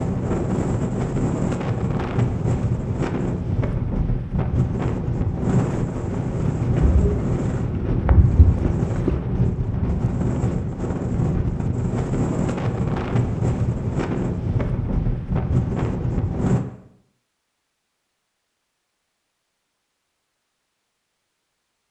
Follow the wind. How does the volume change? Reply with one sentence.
The loudness of the wind stays about the same.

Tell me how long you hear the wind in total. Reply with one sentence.
The wind can be heard for 17 seconds in total.